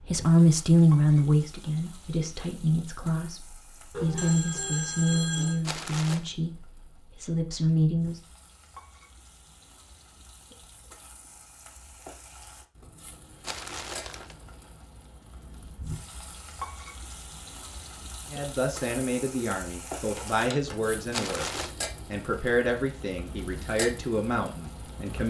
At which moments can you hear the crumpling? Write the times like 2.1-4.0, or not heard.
5.6-6.3, 13.4-14.3, 21.1-21.8.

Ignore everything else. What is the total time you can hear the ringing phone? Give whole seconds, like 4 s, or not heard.
2 s.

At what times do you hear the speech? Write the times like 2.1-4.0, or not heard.
0.1-8.2, 18.3-25.2.